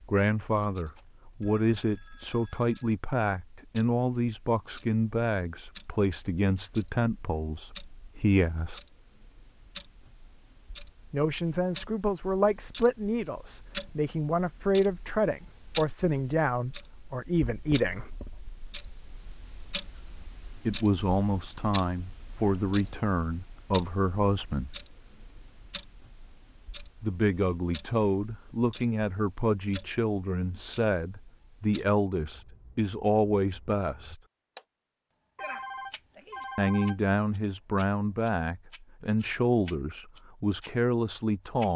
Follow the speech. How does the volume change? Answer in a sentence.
The loudness of the speech stays about the same.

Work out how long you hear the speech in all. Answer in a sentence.
You can hear the speech for 32 seconds altogether.